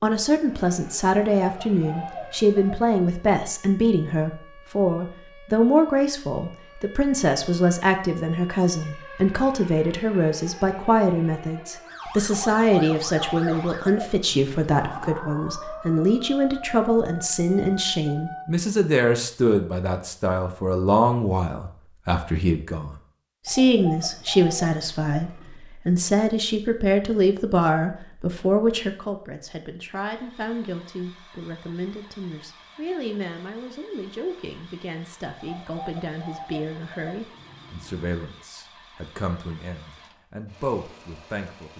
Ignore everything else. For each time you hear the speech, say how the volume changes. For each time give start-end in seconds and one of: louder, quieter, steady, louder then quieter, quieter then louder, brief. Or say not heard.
0.0-41.7 quieter.